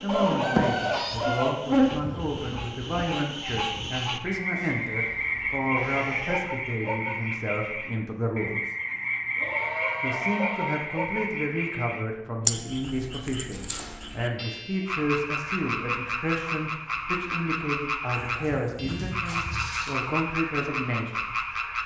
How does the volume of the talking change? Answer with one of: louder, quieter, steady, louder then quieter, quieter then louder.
steady.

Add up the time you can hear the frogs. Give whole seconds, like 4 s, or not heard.
22 s.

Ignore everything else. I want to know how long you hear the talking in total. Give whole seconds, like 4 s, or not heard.
20 s.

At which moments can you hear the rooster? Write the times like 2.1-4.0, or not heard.
0.1-1.6.